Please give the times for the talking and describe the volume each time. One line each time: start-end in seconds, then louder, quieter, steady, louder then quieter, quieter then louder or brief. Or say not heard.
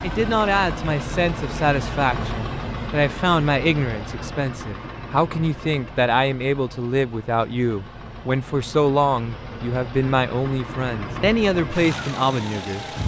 0.0-12.8 steady.